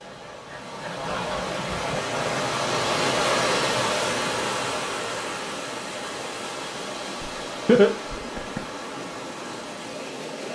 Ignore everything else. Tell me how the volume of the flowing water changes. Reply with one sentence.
The loudness of the flowing water goes up, then down.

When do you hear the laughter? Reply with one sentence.
You can hear the laughter from 7.2 to 8.6 s.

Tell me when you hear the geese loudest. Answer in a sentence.
The loudest moment of the geese is at 1 second.